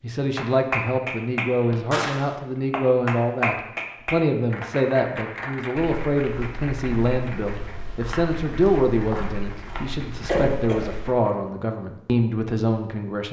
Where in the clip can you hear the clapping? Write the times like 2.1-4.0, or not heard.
0.3-11.5.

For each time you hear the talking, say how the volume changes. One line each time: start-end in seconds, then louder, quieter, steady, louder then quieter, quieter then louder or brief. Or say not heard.
0.0-13.2 steady.